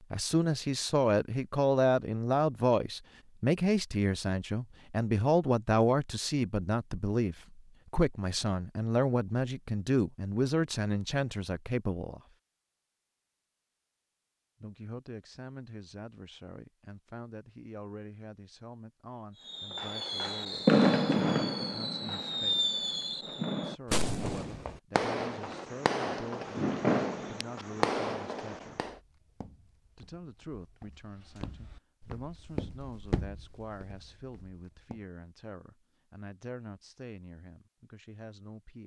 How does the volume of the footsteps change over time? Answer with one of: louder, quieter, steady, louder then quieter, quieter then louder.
louder then quieter.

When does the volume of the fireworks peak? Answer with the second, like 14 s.
21 s.